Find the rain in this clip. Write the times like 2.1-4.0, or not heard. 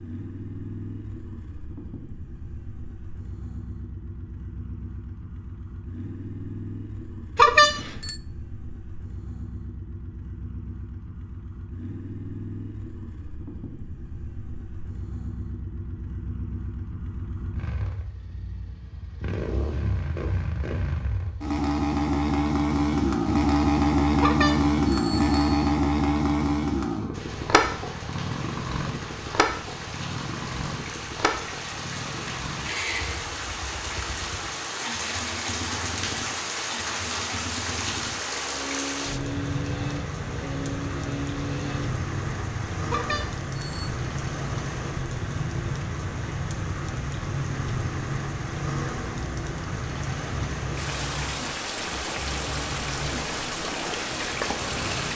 27.1-55.1.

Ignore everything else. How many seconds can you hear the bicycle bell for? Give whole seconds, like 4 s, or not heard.
3 s.